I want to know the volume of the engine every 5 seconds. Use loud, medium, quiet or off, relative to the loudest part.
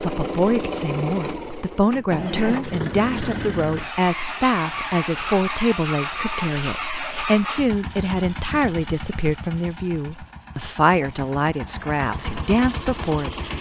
loud, loud, medium.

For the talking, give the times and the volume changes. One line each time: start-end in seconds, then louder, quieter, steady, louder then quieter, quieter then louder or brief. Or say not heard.
0.0-13.3 steady.